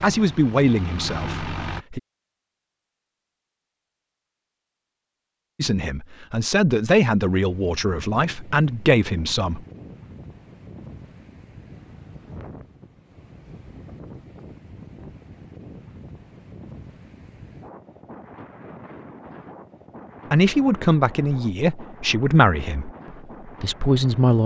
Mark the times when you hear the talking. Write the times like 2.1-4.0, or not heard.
0.0-2.0, 5.5-9.6, 20.3-24.4.